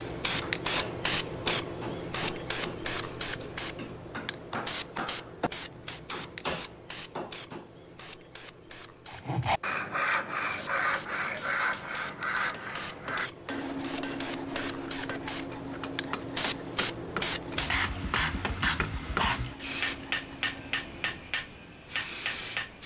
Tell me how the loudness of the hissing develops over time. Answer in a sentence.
The volume of the hissing goes down, then up.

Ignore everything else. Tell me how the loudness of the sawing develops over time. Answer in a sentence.
The volume of the sawing goes down.